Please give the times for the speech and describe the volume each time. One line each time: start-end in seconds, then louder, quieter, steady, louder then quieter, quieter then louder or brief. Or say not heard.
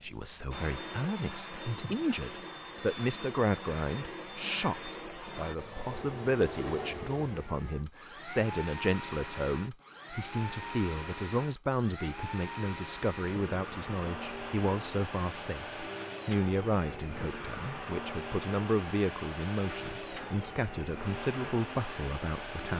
0.0-22.7 steady.